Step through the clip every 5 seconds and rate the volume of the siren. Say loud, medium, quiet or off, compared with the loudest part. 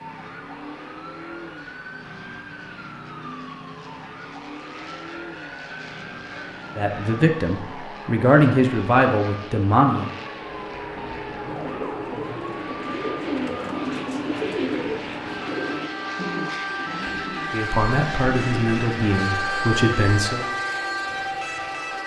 medium, medium, medium, loud, loud.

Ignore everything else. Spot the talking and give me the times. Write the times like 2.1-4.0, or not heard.
6.8-10.1, 17.5-20.4.